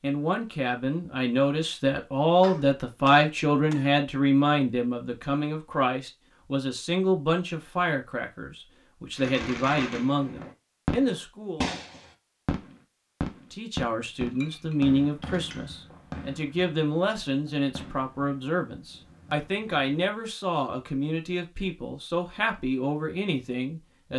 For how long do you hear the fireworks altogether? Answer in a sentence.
The fireworks can be heard for 11 seconds in total.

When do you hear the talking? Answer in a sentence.
The talking can be heard from 0.0 to 11.7 s and from 13.5 to 24.1 s.